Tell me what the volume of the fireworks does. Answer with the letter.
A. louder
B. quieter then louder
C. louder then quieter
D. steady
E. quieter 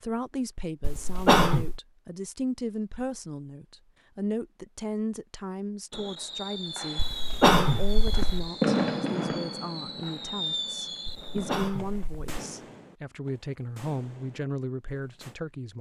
C.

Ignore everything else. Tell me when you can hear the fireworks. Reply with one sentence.
You can hear the fireworks from 5.9 to 15.3 s.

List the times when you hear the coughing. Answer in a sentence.
You can hear the coughing from 0.8 to 1.8 s, from 7.0 to 8.5 s and from 11.1 to 12.3 s.